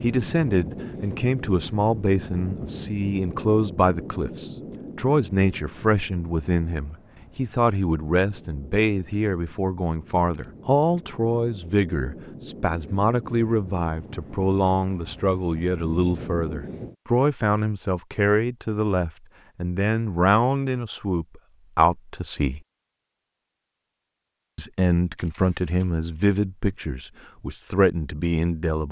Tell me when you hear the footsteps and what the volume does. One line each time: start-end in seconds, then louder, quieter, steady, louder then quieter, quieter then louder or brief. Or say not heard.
not heard.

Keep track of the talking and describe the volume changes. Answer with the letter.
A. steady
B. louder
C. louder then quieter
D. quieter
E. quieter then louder
A.